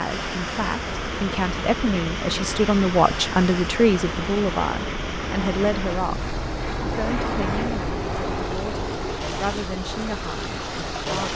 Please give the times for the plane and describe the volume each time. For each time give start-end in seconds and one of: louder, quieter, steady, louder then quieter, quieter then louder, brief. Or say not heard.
0.2-11.3 louder then quieter.